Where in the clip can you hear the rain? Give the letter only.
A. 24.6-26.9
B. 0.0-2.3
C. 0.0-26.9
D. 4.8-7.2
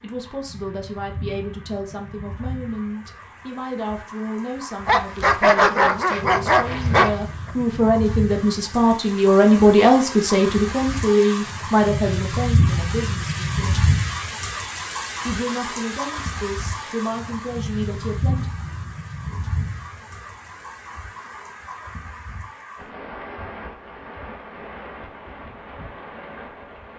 C.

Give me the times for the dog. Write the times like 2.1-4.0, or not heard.
4.8-7.2.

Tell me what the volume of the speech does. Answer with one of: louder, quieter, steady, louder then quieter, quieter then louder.
louder then quieter.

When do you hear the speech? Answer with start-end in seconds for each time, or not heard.
0.0-13.9, 15.2-18.4.